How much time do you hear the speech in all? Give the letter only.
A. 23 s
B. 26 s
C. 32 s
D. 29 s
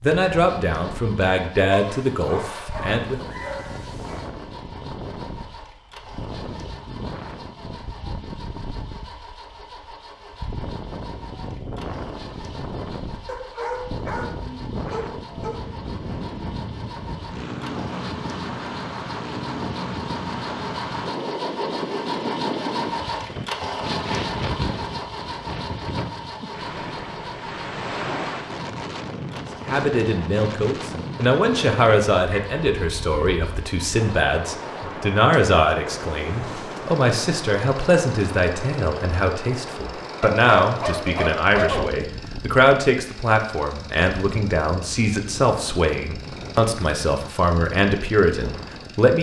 A.